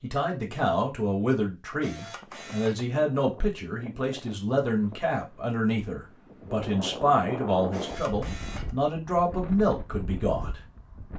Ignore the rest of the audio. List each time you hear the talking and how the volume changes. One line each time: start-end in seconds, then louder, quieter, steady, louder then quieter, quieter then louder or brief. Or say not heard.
0.0-10.6 steady.